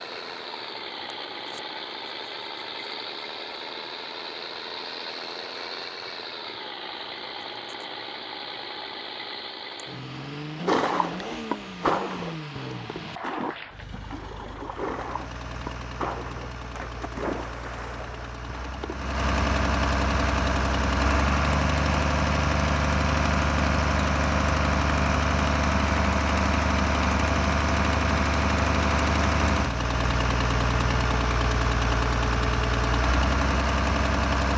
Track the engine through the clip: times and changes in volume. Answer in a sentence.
The engine can be heard from 0.0 to 34.5 s, getting louder.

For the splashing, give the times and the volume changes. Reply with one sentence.
You can hear the splashing from 10.7 to 18.9 s, getting quieter.